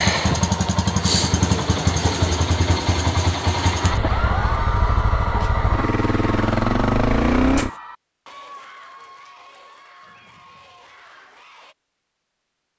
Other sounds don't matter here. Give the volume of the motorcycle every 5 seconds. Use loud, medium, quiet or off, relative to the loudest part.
loud, loud, off.